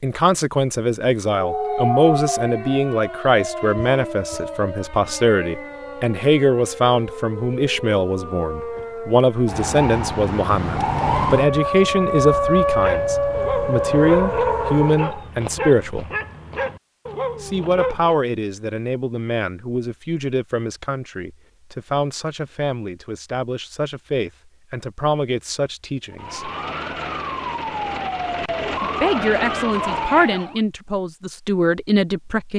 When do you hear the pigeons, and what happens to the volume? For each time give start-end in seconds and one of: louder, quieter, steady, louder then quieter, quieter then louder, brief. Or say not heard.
not heard.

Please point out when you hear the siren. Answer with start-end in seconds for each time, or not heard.
1.2-15.3, 26.1-30.6.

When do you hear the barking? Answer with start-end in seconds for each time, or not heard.
12.7-18.2.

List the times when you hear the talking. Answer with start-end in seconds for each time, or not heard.
0.0-16.1, 17.4-26.5, 28.8-32.5.